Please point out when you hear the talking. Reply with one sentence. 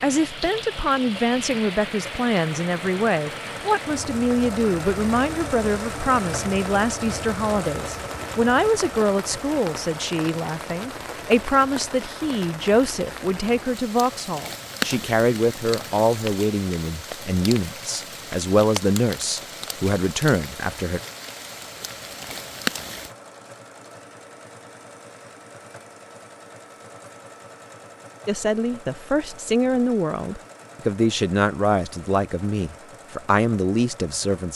You can hear the talking from 0.0 to 21.0 s and from 28.2 to 34.5 s.